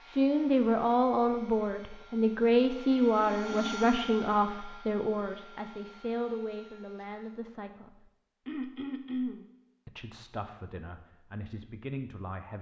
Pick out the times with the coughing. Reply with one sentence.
You can hear the coughing from 3.1 to 4.2 s and from 8.4 to 9.4 s.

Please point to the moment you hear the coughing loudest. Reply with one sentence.
The volume of the coughing peaks at 9 seconds.